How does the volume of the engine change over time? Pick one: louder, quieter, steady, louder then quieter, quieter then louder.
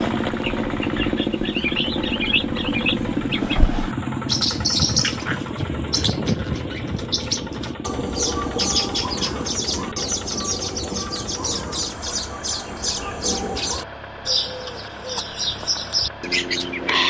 quieter.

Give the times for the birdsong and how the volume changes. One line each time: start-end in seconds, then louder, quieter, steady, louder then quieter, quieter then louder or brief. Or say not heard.
0.0-17.0 steady.